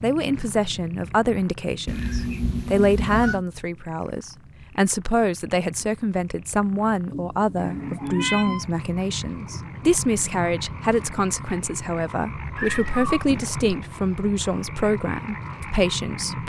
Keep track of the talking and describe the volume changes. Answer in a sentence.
The loudness of the talking stays about the same.